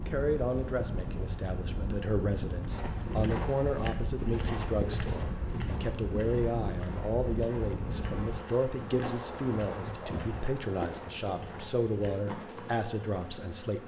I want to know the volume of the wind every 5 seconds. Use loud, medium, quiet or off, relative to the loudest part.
loud, loud, off.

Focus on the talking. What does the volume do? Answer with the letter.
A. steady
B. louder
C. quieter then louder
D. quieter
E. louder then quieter
A.